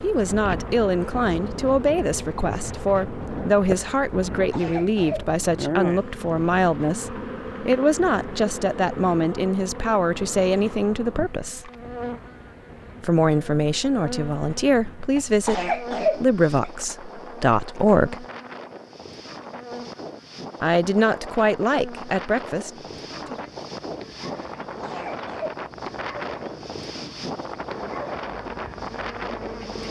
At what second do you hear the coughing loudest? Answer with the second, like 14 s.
16 s.